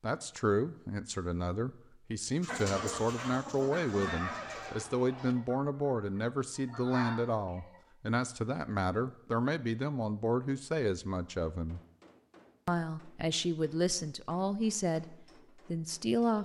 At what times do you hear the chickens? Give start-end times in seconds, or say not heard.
2.4-7.8.